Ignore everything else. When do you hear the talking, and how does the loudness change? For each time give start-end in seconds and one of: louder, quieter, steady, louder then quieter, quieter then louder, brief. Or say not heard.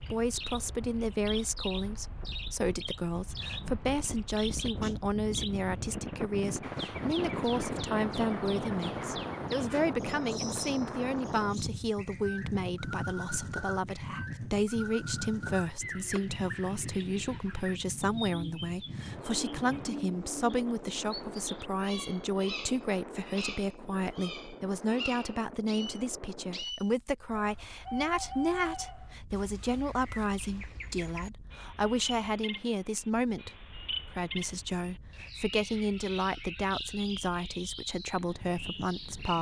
0.0-39.3 steady.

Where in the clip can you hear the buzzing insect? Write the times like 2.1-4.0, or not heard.
not heard.